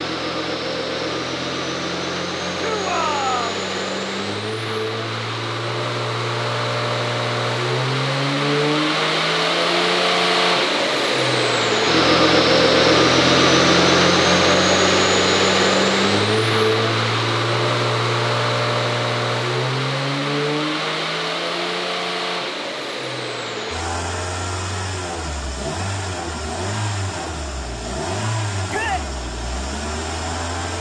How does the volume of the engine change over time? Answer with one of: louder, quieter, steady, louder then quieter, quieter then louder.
louder then quieter.